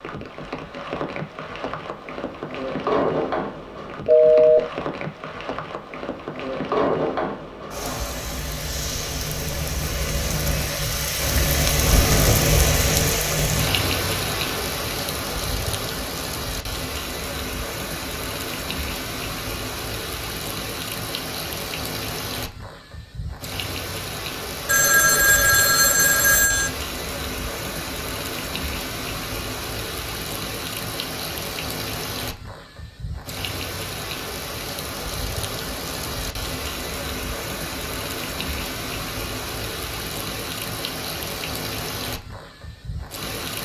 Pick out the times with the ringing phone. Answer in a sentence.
The ringing phone can be heard from 4.0 to 4.6 s and from 24.6 to 26.7 s.